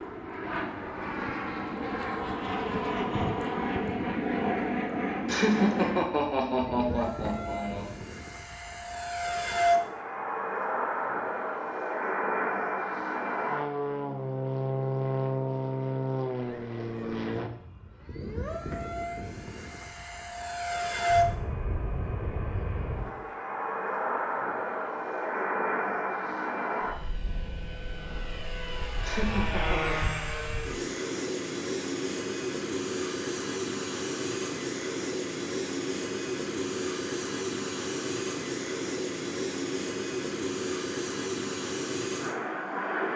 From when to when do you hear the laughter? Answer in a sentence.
You can hear the laughter from 5.2 to 7.9 s and from 29.0 to 30.0 s.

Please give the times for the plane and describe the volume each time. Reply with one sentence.
You can hear the plane from 0.0 to 43.1 s, at a steady volume.